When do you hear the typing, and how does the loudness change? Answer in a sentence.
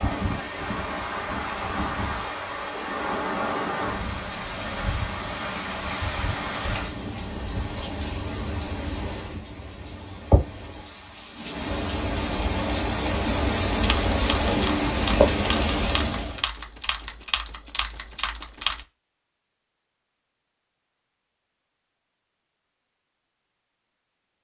The typing can be heard from 13.8 to 18.9 s, at a steady volume.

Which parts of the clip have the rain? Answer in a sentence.
You can hear the rain from 0.0 to 16.4 s.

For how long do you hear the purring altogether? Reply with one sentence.
The purring can't be heard in this clip.